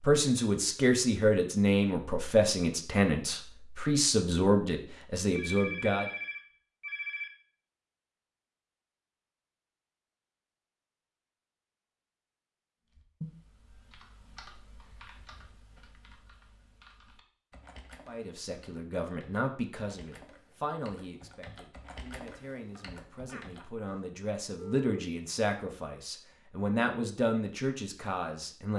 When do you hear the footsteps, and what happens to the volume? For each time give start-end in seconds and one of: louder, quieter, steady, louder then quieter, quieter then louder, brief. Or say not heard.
not heard.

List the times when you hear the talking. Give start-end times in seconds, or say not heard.
0.0-6.1, 18.1-28.7.